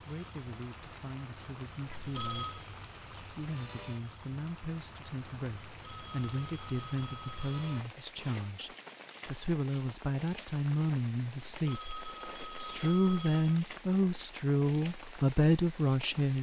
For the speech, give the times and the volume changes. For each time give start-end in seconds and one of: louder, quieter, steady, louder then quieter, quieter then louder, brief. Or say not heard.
0.0-16.3 louder.